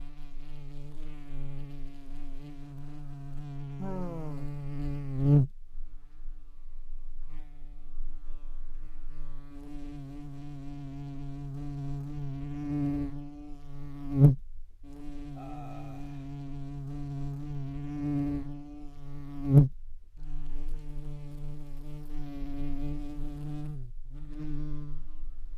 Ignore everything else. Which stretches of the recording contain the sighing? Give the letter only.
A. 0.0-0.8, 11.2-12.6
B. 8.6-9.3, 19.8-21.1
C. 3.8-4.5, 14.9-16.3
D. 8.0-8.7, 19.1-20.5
C.